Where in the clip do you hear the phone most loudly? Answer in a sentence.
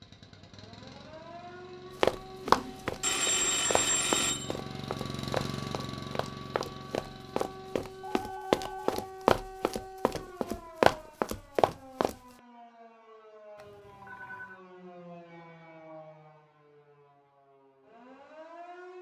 The volume of the phone peaks at 3 seconds.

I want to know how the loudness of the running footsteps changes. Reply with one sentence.
The loudness of the running footsteps goes down, then up.